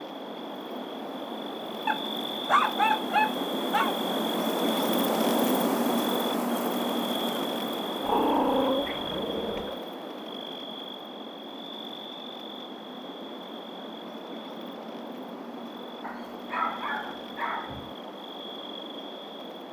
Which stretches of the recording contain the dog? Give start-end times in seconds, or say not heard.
1.9-4.0, 8.0-9.8, 16.0-17.9.